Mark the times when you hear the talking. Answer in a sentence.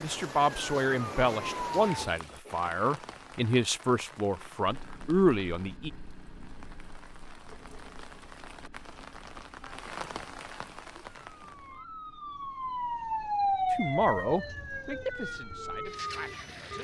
The talking can be heard from 0.0 to 5.9 s and from 13.7 to 16.7 s.